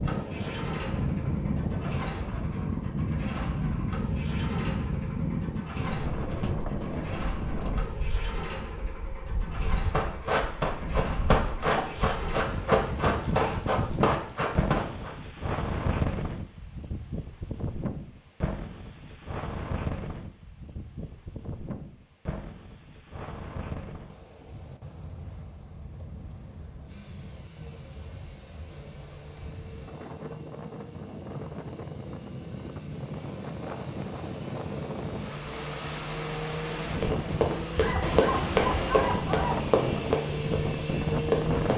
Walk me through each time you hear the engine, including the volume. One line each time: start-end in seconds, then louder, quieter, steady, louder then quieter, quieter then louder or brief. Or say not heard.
0.0-13.6 steady
26.9-41.7 louder.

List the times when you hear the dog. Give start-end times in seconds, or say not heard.
37.8-39.7.